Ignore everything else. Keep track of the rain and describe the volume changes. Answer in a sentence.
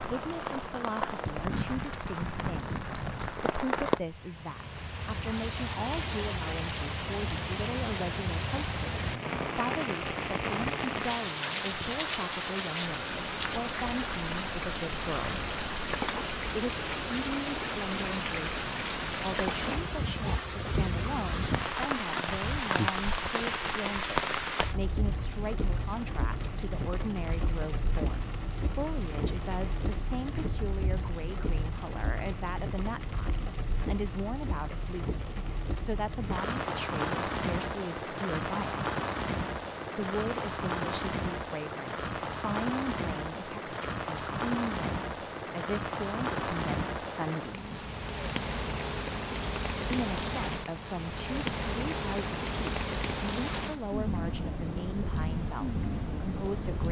The loudness of the rain stays about the same.